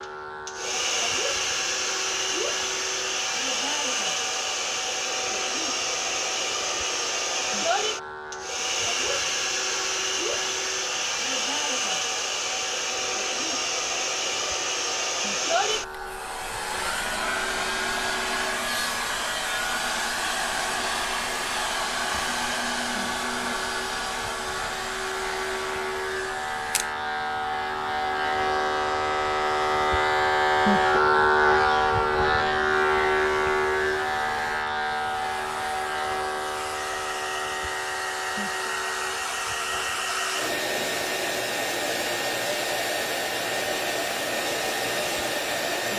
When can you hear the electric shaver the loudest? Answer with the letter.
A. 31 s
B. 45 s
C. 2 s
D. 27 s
A.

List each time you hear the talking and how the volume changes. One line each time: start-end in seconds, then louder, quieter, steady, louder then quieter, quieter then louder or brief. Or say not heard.
not heard.